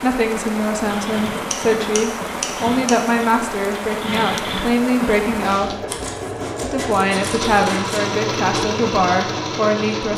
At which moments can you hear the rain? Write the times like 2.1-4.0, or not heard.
0.0-5.8.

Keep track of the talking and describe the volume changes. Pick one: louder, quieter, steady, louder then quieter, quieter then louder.
steady.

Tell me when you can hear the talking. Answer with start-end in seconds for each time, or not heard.
0.0-5.8, 6.6-10.1.